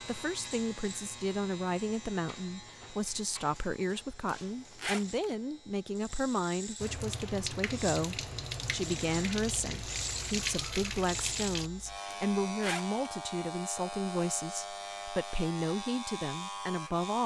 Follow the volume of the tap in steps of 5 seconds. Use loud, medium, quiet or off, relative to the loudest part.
off, loud, loud, off.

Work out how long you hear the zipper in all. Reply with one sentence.
You can hear the zipper for 2 seconds altogether.